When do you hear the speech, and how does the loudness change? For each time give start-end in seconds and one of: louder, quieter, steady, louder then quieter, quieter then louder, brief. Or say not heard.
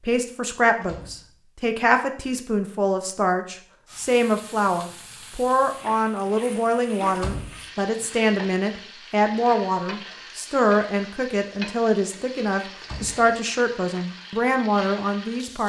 0.0-15.6 steady.